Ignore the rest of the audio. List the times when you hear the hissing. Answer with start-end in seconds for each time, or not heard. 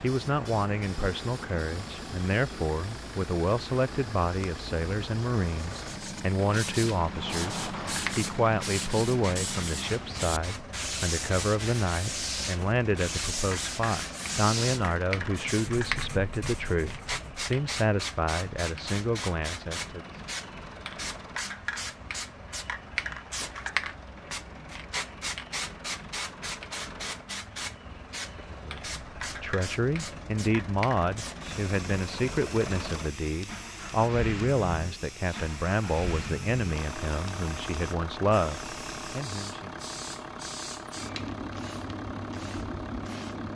0.0-43.5.